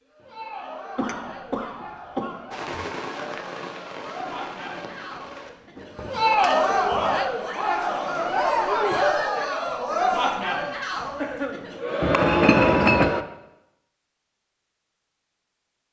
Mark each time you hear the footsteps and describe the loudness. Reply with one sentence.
The footsteps can't be heard in this clip.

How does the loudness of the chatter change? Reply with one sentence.
The volume of the chatter goes up.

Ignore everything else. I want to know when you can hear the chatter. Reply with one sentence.
The chatter can be heard from 0.1 to 13.2 s.